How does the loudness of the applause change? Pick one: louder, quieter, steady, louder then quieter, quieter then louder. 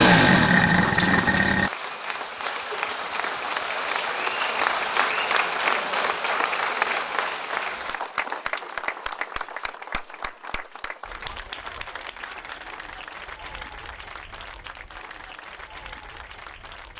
quieter.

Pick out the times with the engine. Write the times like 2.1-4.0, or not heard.
0.0-1.7.